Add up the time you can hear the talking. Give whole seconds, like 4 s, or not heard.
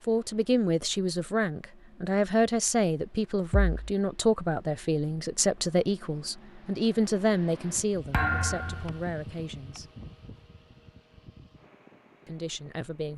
11 s.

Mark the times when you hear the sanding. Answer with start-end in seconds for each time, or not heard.
not heard.